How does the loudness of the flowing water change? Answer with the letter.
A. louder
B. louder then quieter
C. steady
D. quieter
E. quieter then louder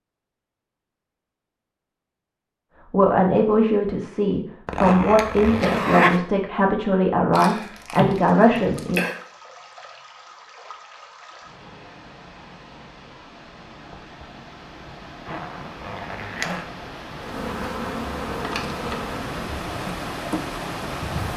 A.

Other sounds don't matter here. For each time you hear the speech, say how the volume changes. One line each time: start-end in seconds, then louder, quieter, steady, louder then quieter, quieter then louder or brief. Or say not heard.
2.9-9.0 steady.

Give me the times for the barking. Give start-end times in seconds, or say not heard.
not heard.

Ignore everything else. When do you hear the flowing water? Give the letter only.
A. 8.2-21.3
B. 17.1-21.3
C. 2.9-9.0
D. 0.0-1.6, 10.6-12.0
A.